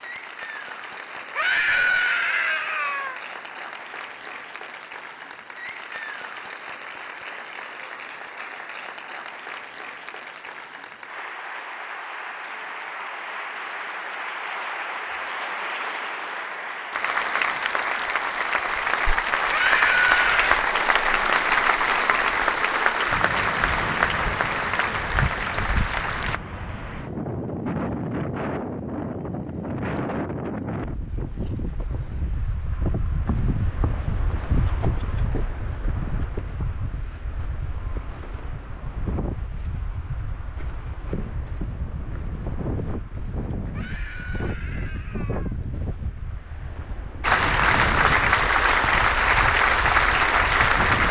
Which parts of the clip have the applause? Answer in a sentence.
The applause can be heard from 0.0 to 26.4 s and from 47.2 to 51.0 s.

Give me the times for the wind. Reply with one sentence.
You can hear the wind from 23.1 to 51.0 s.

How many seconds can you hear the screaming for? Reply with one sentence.
You can hear the screaming for 5 seconds altogether.